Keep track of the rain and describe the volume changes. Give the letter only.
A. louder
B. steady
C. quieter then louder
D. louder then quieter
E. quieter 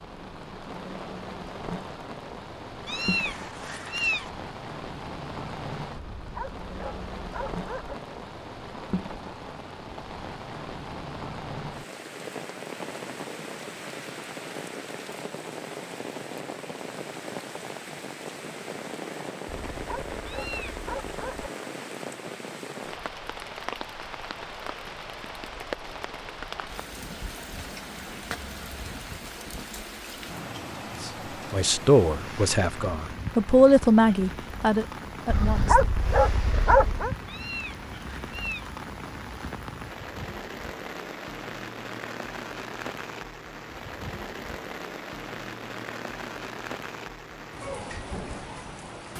B.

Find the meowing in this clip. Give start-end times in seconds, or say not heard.
2.9-4.3, 20.2-20.9, 37.2-38.7.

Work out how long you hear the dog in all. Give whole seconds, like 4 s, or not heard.
6 s.